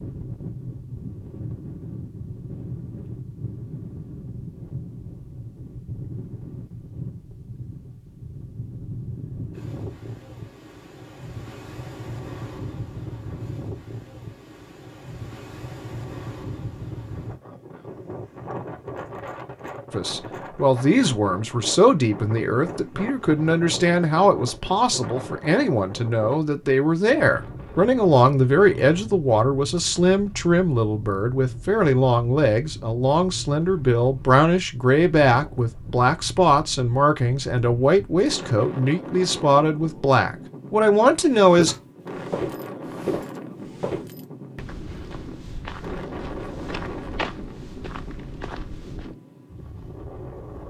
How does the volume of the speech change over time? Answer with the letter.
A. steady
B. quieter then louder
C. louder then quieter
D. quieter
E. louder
A.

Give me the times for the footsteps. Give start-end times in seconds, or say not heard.
41.5-49.1.